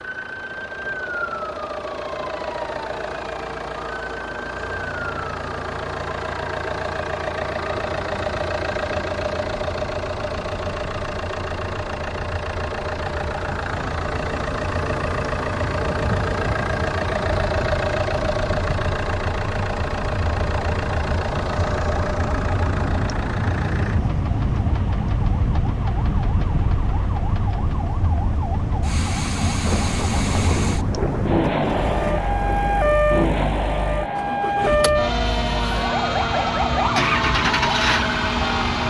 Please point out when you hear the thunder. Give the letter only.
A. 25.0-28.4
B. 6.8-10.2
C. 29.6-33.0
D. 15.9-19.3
C.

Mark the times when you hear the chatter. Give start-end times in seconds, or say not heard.
not heard.